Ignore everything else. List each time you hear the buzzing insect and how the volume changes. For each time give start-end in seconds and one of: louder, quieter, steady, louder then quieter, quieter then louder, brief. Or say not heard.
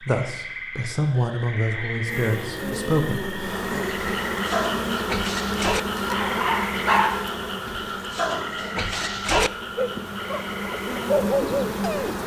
2.0-12.2 quieter then louder.